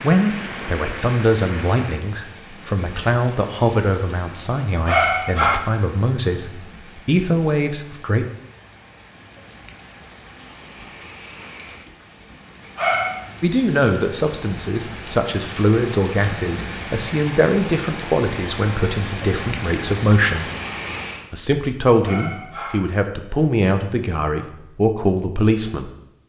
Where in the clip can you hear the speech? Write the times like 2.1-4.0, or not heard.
0.0-8.2, 13.4-20.4, 21.3-25.9.